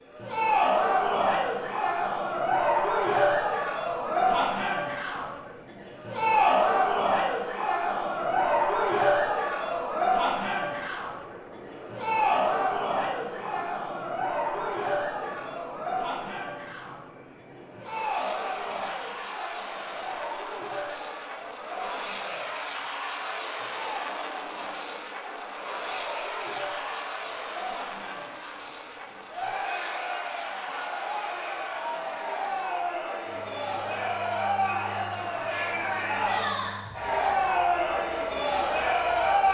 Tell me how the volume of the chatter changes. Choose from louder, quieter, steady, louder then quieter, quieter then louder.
quieter then louder.